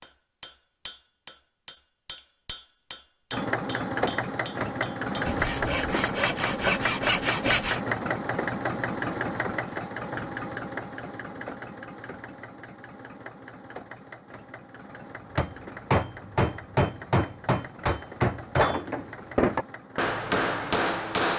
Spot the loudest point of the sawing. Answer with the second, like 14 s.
7 s.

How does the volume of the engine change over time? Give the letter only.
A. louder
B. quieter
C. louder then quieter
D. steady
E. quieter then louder
B.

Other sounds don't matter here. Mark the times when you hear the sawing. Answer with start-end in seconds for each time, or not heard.
5.2-7.8.